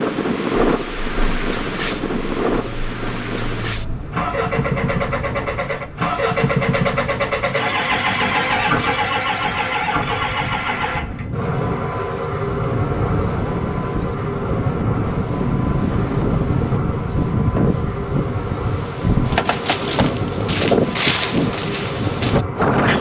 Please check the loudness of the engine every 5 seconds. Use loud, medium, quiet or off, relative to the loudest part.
medium, loud, loud, medium, medium.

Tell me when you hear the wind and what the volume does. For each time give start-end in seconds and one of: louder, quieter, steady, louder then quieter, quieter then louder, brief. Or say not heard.
0.0-22.9 quieter then louder.